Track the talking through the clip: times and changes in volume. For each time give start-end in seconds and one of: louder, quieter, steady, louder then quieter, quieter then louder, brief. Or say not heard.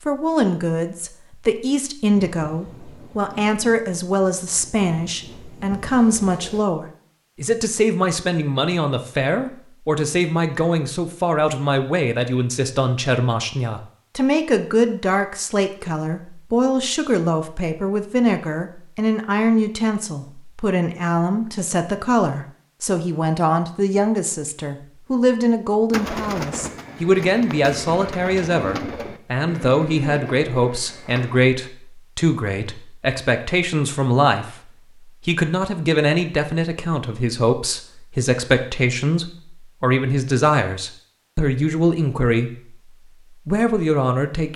0.1-44.5 steady.